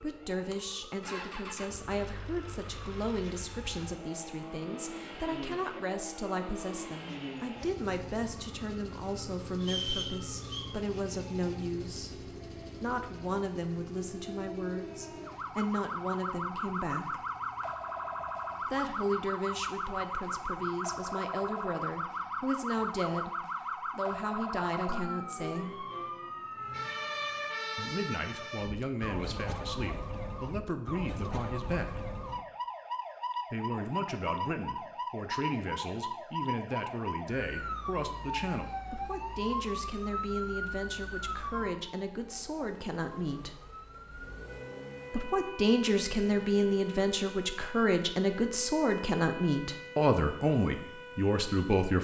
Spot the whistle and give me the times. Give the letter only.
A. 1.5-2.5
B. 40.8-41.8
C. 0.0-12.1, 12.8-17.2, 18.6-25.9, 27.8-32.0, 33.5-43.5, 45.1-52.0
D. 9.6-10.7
D.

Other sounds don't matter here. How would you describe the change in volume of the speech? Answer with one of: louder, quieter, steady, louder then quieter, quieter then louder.
louder.